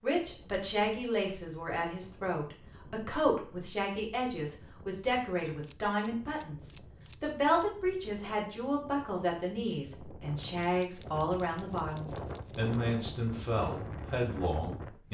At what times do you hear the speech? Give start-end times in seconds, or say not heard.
0.0-15.0.